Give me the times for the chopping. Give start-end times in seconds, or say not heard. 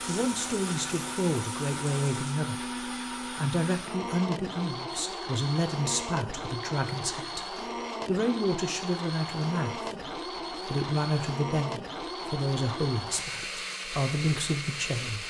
not heard.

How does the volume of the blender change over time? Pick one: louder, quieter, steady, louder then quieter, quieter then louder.
steady.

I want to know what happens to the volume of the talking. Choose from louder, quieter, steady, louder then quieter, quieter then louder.
steady.